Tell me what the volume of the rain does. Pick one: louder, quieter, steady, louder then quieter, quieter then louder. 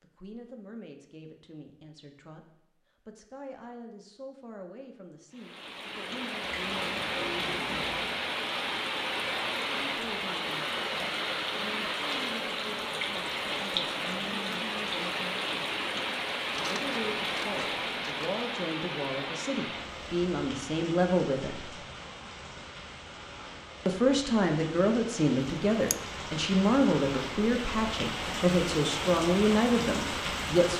quieter then louder.